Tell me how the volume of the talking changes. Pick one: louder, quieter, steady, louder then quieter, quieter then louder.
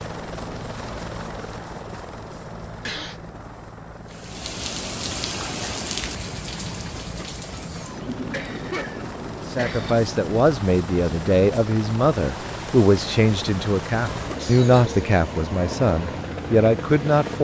steady.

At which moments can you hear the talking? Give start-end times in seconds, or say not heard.
9.4-17.3.